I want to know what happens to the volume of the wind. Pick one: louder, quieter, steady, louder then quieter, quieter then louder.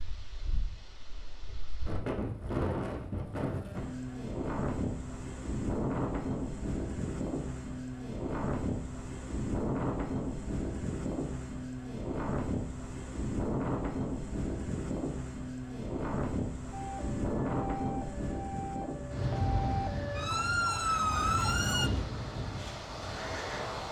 steady.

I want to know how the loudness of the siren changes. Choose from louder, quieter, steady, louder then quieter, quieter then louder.
louder.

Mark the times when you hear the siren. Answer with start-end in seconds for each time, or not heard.
16.8-21.9.